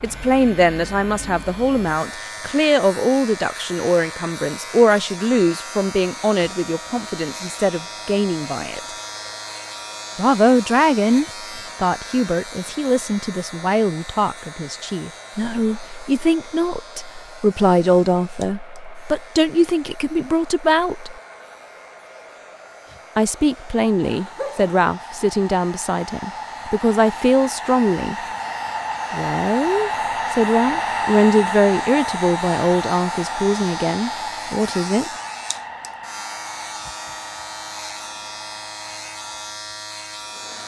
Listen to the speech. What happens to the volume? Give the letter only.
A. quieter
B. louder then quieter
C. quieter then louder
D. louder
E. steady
E.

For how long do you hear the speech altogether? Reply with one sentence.
The speech can be heard for 31 seconds in total.